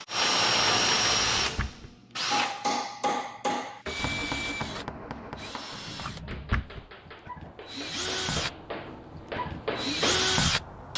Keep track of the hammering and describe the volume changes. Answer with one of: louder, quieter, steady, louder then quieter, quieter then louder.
quieter then louder.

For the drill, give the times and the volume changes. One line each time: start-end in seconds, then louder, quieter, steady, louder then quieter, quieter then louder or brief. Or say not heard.
0.0-10.9 quieter then louder.